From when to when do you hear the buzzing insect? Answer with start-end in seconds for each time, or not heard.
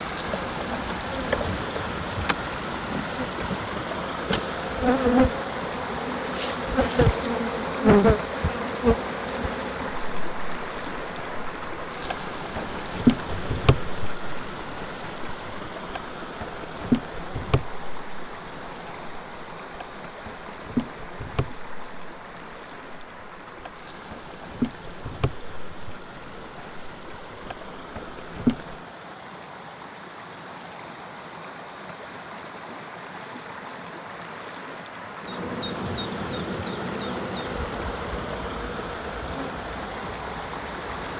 0.0-28.8, 35.2-41.1.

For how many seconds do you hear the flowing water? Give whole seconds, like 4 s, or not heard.
41 s.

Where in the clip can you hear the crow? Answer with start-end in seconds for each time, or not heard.
not heard.